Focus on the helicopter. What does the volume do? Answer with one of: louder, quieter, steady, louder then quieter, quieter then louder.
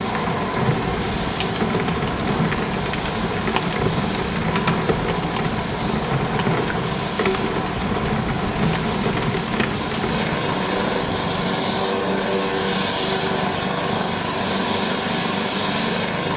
louder.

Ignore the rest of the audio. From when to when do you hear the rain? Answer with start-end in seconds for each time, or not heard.
0.0-11.4.